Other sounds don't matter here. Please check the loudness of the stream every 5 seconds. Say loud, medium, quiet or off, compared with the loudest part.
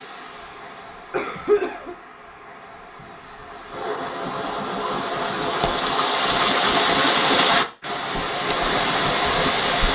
quiet, loud.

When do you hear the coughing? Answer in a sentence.
The coughing can be heard from 1.1 to 1.9 s and from 6.2 to 7.3 s.